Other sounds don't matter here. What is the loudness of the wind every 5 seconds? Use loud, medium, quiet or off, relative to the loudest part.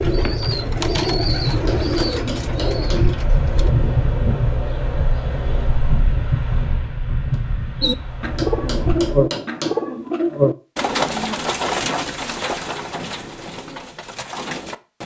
loud, loud, off.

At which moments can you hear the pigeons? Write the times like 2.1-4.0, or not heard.
0.0-3.7, 7.8-15.0.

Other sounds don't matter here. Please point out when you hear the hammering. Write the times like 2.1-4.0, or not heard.
1.5-3.1, 8.2-10.2.